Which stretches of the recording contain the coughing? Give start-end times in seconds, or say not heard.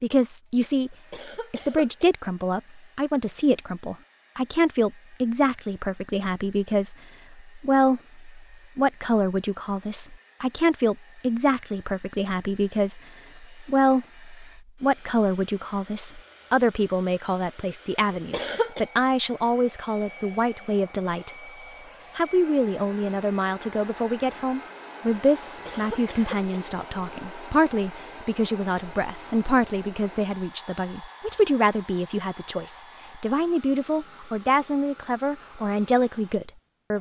0.9-2.0, 18.1-18.9, 25.4-26.4.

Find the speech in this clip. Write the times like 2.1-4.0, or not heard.
0.0-21.3, 22.1-36.9.